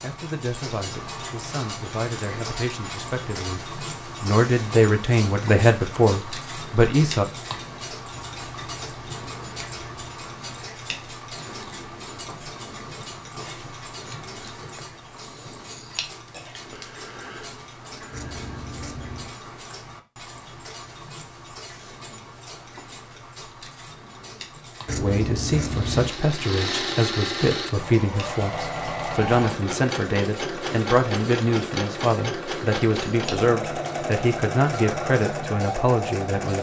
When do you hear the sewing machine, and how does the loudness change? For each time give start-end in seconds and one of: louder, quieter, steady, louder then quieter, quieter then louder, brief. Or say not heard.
25.6-36.5 steady.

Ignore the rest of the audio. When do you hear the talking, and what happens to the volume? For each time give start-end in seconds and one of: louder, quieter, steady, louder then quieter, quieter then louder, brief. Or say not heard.
0.0-7.2 louder
24.9-36.5 steady.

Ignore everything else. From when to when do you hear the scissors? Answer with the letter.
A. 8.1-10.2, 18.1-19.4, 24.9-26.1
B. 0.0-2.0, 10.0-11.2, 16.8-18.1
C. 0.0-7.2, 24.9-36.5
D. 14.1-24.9
A.